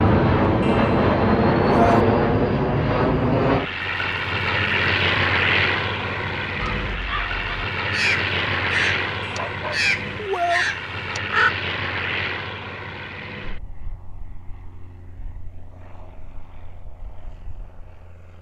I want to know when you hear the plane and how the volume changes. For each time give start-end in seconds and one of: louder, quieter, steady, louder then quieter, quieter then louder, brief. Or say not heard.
0.0-18.3 quieter.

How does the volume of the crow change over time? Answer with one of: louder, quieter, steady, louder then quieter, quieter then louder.
louder.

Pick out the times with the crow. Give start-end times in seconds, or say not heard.
6.5-11.5.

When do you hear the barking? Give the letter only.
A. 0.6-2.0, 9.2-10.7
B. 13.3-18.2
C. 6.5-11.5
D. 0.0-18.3
A.